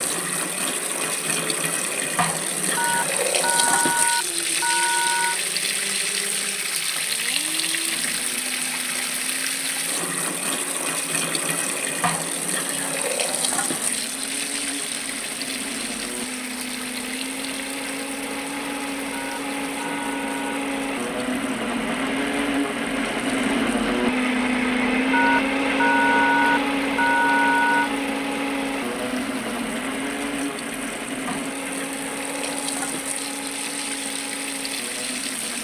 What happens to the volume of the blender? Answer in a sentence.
The loudness of the blender goes up, then down.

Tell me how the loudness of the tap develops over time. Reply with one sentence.
The volume of the tap goes down, then up.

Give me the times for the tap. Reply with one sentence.
The tap can be heard from 0.0 to 35.5 s.